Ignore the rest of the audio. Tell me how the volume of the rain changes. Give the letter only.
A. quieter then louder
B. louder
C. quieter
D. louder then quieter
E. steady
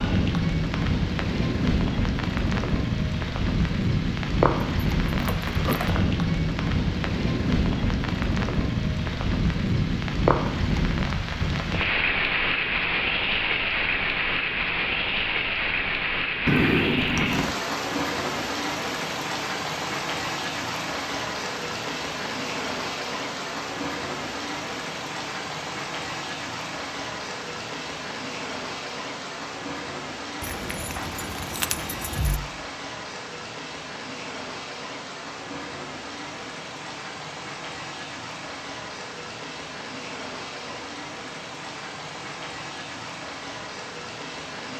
C.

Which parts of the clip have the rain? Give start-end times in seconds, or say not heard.
0.0-44.7.